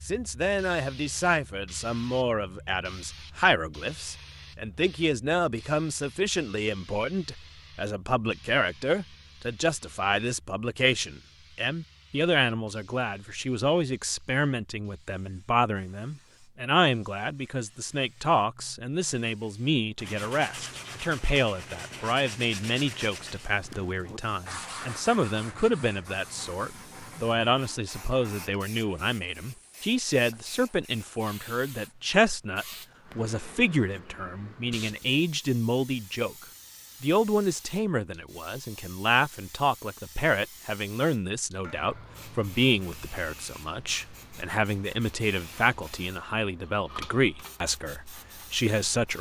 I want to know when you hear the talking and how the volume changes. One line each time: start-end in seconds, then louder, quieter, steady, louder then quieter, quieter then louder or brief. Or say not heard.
0.0-49.1 steady.